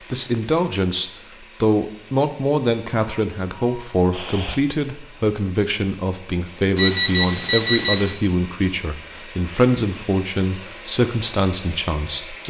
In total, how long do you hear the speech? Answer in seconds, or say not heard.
12 s.